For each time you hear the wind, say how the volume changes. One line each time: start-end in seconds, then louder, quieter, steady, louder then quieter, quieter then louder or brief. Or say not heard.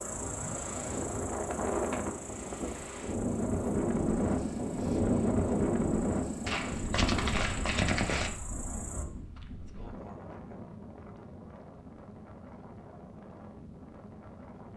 0.0-14.7 louder then quieter.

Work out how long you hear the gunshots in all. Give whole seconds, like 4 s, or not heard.
2 s.